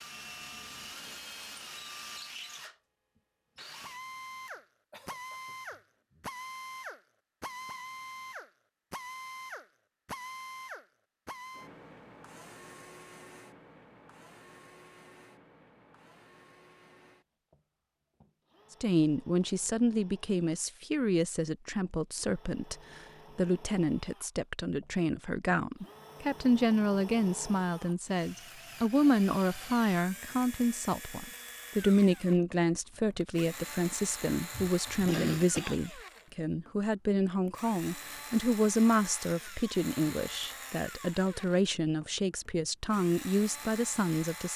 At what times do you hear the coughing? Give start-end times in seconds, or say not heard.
4.5-6.3, 34.5-36.0.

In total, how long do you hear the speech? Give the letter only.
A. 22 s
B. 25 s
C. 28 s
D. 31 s
B.